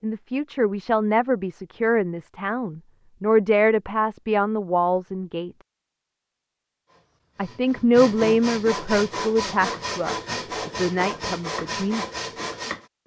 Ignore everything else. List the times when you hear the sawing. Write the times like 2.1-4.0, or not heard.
6.8-12.8.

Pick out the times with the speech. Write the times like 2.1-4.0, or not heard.
0.0-5.5, 7.3-12.2.